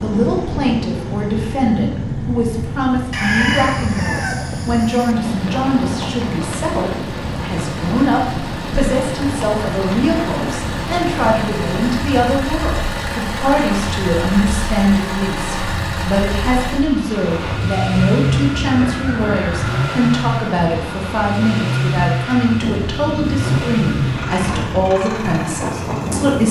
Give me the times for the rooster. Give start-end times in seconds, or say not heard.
3.1-5.2, 18.8-20.3.